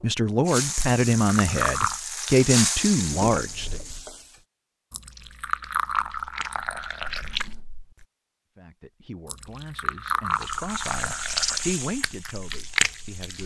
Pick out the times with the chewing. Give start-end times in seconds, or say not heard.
5.1-8.1, 10.4-13.4.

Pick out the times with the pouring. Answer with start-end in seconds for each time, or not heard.
0.8-2.0, 4.9-7.3, 9.2-11.7.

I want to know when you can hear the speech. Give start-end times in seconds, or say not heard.
0.0-3.8, 8.6-13.4.